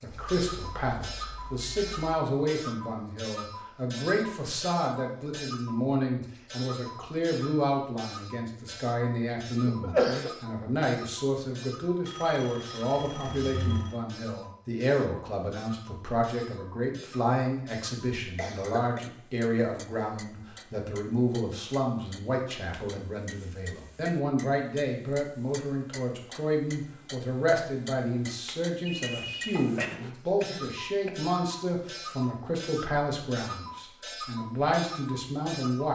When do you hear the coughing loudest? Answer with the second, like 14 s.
10 s.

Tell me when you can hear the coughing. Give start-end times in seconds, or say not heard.
9.7-10.3, 18.4-19.0, 29.8-31.2.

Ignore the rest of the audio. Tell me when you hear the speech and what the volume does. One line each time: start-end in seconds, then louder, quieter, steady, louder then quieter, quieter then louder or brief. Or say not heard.
0.0-35.9 steady.